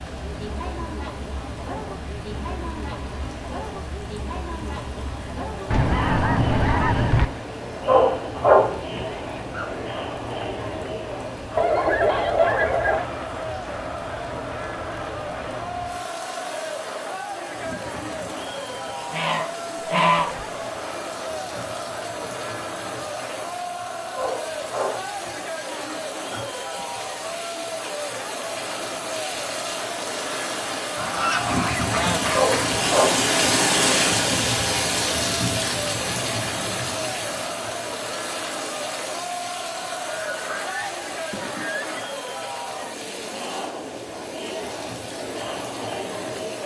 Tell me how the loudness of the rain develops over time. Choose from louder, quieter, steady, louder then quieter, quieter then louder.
louder then quieter.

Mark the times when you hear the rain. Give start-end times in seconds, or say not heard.
0.0-46.6.